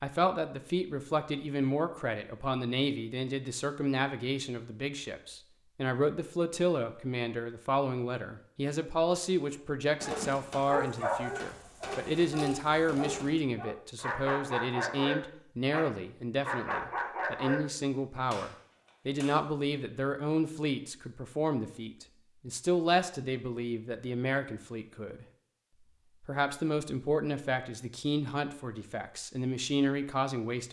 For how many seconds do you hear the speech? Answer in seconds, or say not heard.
30 s.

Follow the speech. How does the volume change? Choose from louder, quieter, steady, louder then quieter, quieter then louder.
steady.